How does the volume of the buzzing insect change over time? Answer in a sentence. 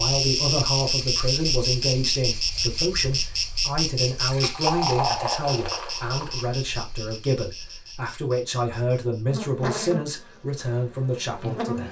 The loudness of the buzzing insect goes down, then up.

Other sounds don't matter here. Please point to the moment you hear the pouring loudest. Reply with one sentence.
The volume of the pouring peaks at 5 seconds.